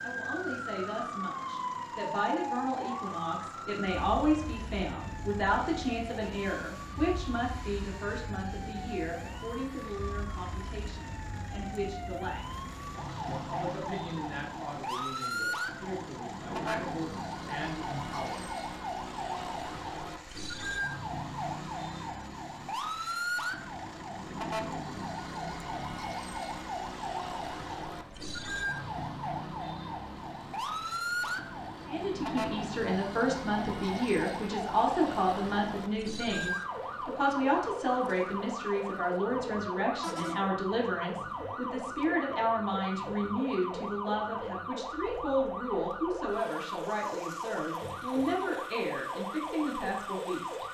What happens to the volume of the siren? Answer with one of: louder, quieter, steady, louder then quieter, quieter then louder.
steady.